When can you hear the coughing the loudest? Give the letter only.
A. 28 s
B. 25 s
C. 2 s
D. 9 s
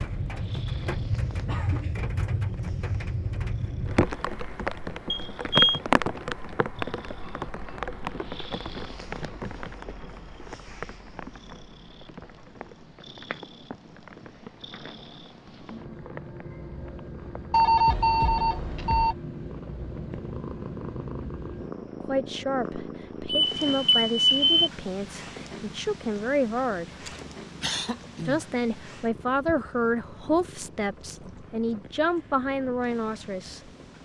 A.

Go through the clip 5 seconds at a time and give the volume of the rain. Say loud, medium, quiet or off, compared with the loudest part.
loud, loud, quiet, quiet, quiet, quiet, quiet.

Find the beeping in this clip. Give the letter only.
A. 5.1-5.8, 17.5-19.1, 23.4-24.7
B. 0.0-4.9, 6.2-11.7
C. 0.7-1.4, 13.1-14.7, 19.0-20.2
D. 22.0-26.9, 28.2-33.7
A.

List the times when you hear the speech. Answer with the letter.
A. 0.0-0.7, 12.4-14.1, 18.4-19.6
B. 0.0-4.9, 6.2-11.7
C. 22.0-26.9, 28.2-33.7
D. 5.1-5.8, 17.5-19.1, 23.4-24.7
C.